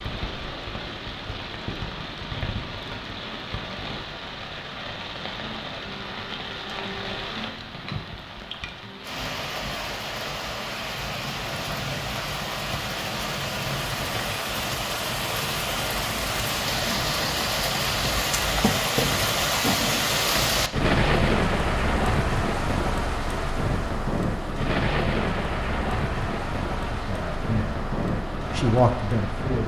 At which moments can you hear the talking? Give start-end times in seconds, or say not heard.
26.9-27.9, 28.5-29.6.